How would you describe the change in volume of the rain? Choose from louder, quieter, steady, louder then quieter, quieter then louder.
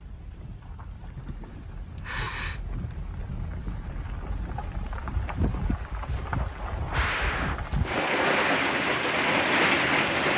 louder.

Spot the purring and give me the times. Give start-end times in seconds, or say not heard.
not heard.